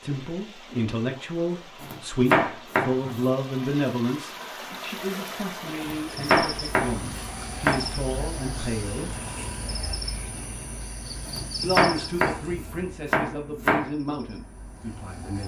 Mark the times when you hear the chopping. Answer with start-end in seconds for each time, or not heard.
1.8-3.2, 5.8-7.8, 11.2-13.9.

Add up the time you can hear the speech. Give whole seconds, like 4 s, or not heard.
13 s.